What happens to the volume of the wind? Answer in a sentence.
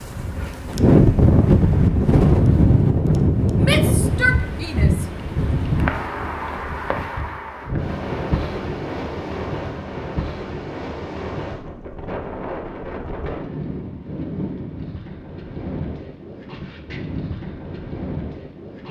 The loudness of the wind goes down.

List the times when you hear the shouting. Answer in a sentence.
The shouting can be heard from 3.6 to 5.0 s.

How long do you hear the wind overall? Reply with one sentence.
The wind can be heard for 19 seconds in total.